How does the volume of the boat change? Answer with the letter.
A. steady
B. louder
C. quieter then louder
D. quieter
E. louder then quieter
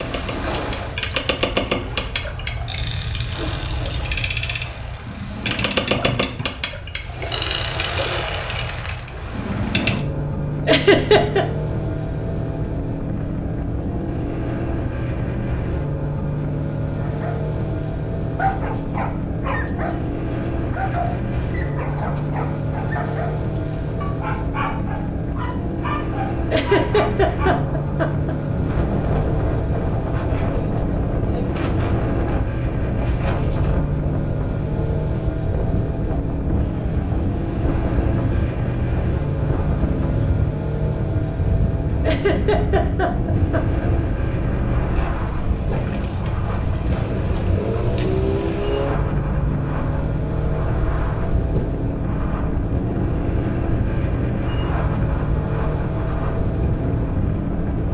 A.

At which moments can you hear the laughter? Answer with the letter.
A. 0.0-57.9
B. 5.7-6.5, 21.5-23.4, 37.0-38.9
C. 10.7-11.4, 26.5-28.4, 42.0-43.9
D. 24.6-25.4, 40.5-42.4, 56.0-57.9
C.